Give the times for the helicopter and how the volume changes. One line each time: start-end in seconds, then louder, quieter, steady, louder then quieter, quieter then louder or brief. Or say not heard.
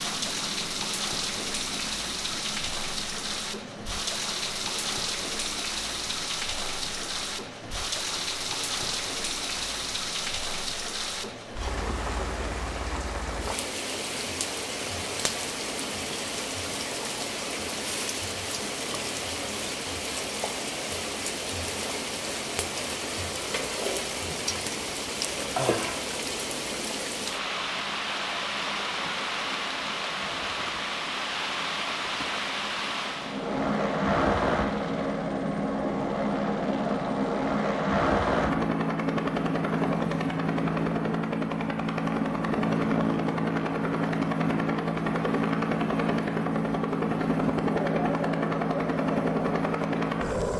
0.0-50.5 louder.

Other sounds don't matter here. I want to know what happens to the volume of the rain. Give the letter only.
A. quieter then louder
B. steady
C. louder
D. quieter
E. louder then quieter
B.